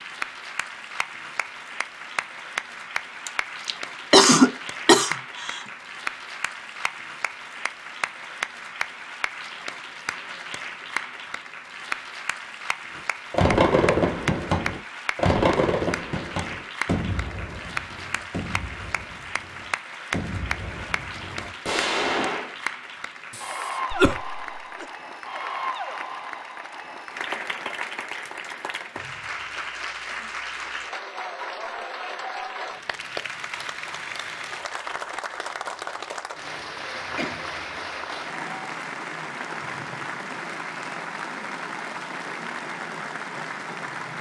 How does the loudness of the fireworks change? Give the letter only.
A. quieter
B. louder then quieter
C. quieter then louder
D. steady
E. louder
C.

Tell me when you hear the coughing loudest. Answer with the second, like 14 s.
4 s.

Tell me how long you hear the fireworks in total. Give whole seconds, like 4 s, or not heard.
9 s.